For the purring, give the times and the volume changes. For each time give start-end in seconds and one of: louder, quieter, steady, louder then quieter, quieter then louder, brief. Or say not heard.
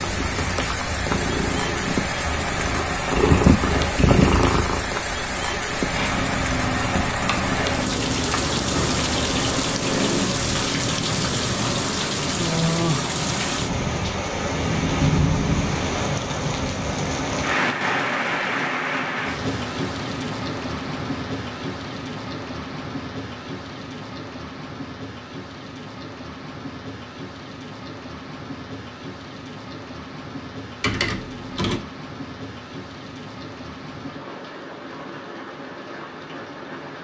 0.0-12.0 louder then quieter.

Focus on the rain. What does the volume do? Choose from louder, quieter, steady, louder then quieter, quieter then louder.
quieter.